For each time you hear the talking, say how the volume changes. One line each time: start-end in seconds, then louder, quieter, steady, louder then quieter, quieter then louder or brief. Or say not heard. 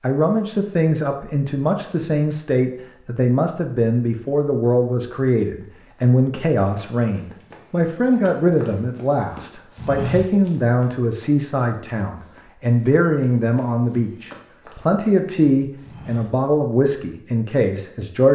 0.0-18.3 steady.